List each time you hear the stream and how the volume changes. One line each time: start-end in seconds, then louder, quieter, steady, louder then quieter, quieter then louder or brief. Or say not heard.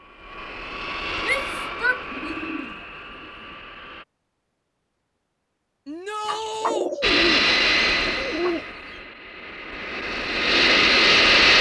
not heard.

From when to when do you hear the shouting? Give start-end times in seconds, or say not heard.
1.2-2.3, 5.8-6.9.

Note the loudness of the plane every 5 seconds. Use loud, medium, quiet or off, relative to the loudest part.
quiet, medium, loud.